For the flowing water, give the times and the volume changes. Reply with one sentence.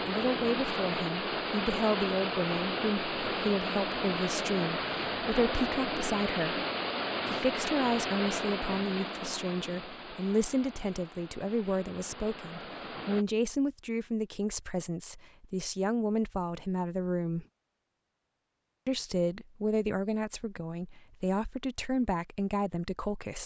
The flowing water can be heard from 0.0 to 13.2 s, getting quieter.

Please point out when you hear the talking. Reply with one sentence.
You can hear the talking from 0.1 to 6.6 s, from 7.2 to 17.4 s and from 18.9 to 23.4 s.